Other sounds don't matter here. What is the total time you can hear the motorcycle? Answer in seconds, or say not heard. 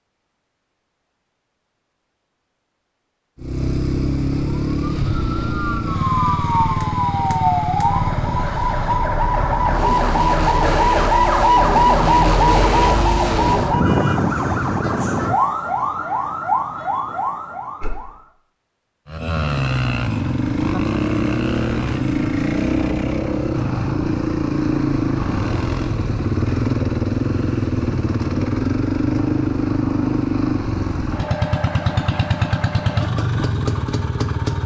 26 s.